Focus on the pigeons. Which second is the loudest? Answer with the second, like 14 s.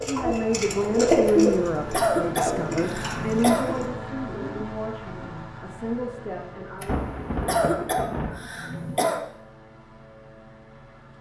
1 s.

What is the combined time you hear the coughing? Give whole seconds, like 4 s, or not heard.
5 s.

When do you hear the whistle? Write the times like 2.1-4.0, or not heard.
not heard.